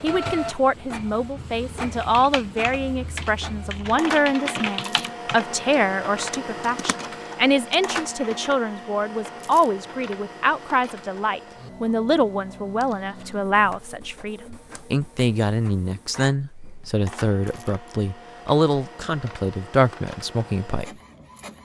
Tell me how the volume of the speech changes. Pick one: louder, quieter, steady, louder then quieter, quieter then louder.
steady.